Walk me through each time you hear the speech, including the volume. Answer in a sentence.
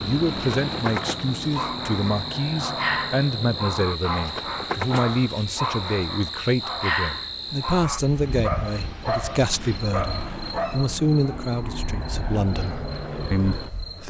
You can hear the speech from 0.0 to 14.0 s, at a steady volume.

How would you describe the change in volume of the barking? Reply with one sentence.
The loudness of the barking stays about the same.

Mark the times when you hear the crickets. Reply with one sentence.
You can hear the crickets from 0.0 to 14.0 s.